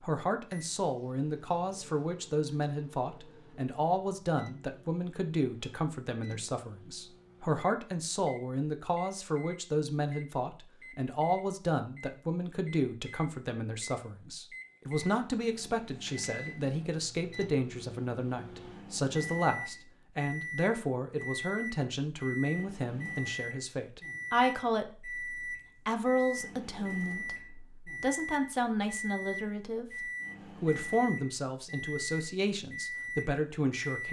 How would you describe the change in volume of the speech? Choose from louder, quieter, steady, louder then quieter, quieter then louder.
steady.